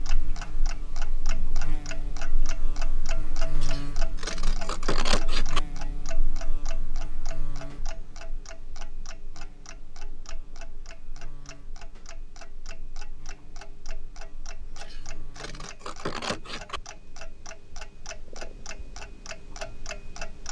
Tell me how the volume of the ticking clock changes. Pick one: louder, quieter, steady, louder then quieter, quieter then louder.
quieter then louder.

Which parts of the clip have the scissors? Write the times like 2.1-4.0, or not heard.
3.6-5.6, 14.8-16.8.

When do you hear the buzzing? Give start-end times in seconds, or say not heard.
0.0-15.7.